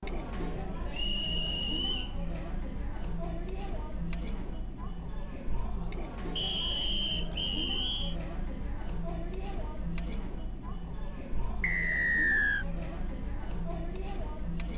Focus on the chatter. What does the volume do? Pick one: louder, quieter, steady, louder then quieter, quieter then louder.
steady.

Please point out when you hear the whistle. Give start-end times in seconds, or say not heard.
0.9-2.1, 6.3-8.2, 11.6-12.7.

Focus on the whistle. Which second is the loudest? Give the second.
12 s.